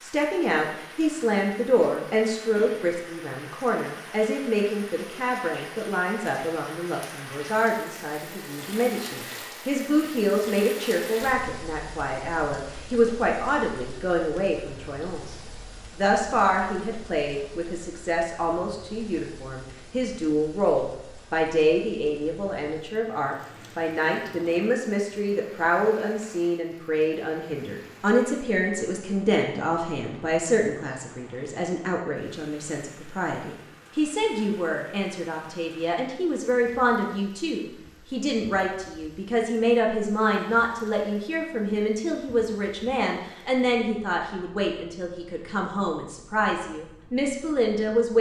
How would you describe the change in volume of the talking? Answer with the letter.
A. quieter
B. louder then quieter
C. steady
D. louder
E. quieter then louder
C.